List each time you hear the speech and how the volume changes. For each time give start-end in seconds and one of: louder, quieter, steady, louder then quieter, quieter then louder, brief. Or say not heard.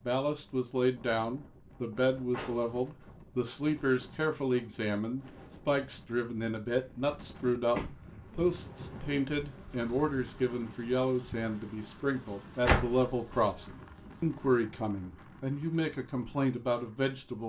0.0-17.4 steady.